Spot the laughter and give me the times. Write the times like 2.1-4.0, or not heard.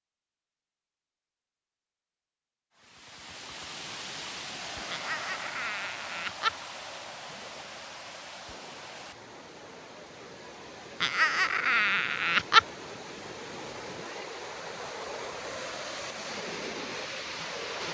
4.9-6.7, 11.0-12.7.